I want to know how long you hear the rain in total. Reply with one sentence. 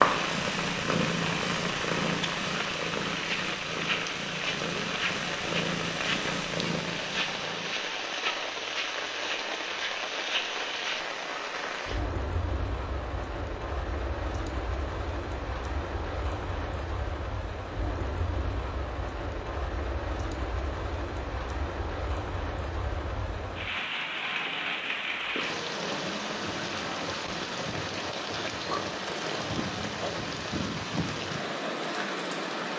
You can hear the rain for 33 seconds altogether.